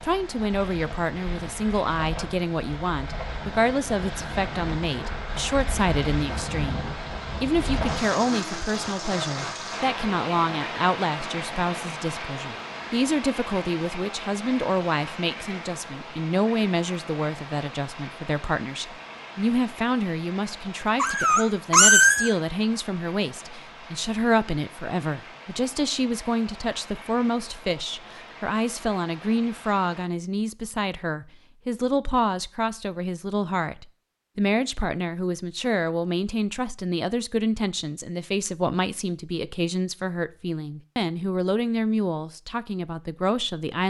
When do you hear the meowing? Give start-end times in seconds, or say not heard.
20.9-22.3.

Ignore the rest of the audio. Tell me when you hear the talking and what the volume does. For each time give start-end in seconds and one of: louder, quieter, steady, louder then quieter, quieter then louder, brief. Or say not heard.
0.0-43.8 steady.